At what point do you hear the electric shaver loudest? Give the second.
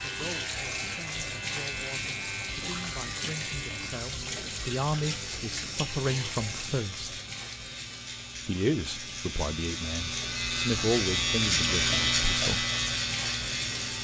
12 s.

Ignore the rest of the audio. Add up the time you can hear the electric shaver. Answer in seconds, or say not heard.
14 s.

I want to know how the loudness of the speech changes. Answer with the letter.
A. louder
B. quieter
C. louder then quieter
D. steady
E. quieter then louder
A.